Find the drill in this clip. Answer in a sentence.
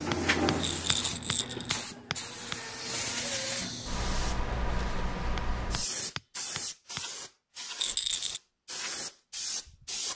You can't hear the drill here.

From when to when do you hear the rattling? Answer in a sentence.
The rattling can be heard from 0.6 to 1.8 s and from 7.8 to 8.4 s.